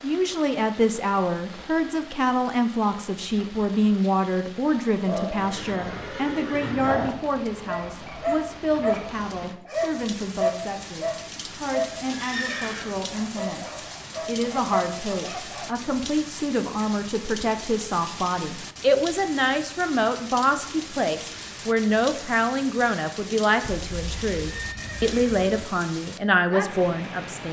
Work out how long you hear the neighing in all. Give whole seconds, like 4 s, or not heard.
5 s.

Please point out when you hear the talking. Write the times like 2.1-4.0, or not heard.
0.0-27.4.